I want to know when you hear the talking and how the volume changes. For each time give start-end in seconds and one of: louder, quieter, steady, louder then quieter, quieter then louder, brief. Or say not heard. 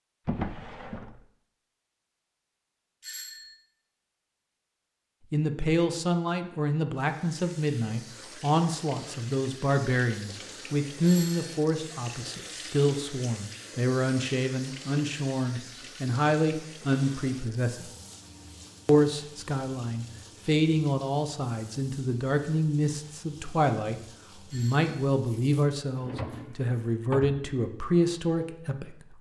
5.3-17.9 steady
18.9-29.1 steady.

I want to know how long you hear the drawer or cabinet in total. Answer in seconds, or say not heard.
3 s.